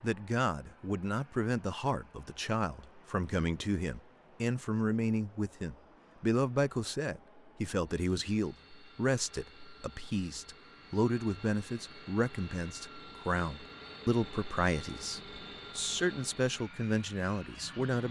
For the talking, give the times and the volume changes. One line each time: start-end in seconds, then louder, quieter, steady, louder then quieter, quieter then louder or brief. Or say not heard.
0.0-18.0 steady.